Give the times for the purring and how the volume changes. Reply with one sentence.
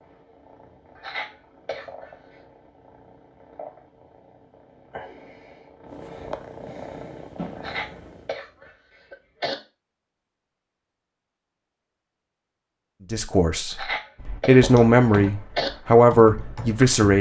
You can hear the purring from 0.0 to 8.3 s, getting louder.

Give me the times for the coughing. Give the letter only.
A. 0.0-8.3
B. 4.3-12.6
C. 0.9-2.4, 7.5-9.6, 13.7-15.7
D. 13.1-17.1
C.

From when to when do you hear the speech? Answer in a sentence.
You can hear the speech from 13.1 to 17.1 s.